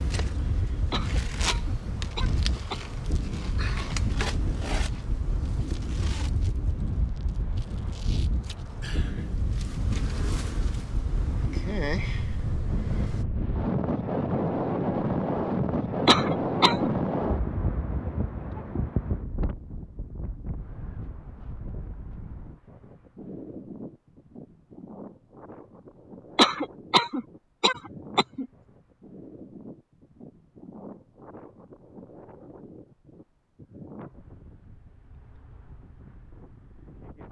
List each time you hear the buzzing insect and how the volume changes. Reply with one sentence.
The buzzing insect can be heard from 0.0 to 13.2 s, getting quieter then louder.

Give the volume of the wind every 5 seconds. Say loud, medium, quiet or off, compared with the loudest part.
medium, medium, loud, loud, quiet, quiet, quiet, quiet.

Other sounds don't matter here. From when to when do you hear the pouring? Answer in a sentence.
The pouring can't be heard in this clip.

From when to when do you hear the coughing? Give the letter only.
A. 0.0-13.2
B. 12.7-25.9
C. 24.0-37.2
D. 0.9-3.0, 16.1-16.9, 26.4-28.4
D.